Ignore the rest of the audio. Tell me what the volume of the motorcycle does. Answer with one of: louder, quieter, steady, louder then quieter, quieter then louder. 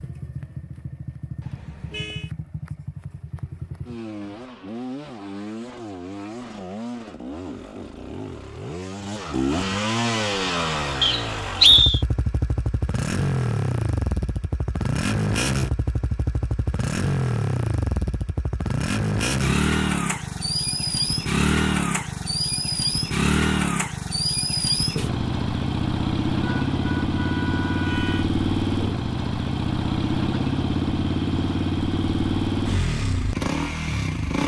louder.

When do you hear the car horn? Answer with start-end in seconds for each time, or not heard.
1.4-2.3, 26.4-28.3.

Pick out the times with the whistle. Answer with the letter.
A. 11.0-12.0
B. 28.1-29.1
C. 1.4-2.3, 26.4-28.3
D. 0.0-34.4
A.